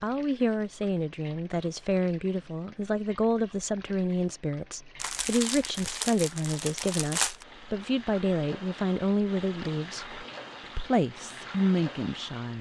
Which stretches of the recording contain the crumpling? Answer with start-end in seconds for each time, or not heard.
5.0-7.5.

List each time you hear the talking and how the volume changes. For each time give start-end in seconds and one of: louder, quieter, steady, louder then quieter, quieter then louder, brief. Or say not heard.
0.0-12.5 steady.